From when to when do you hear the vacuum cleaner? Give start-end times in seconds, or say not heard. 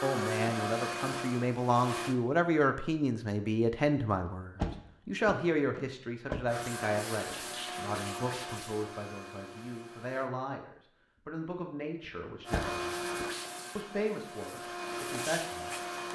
0.0-2.1, 6.5-10.3, 12.4-16.1.